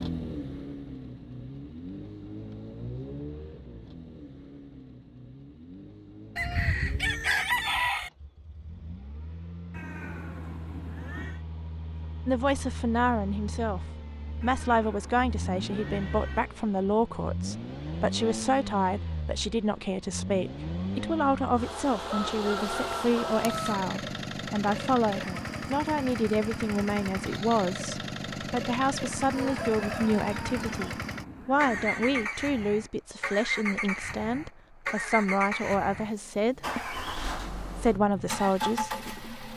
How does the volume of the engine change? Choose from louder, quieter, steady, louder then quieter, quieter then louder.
louder.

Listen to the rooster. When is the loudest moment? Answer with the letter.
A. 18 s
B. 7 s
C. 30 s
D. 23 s
B.